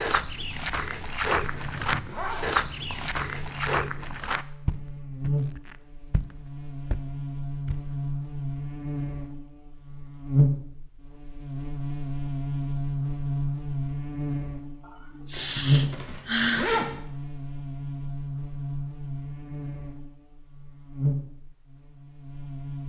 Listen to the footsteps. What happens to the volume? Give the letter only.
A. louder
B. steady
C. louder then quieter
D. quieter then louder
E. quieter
E.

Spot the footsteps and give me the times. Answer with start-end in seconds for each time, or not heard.
0.0-7.9.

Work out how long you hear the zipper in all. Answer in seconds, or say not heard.
3 s.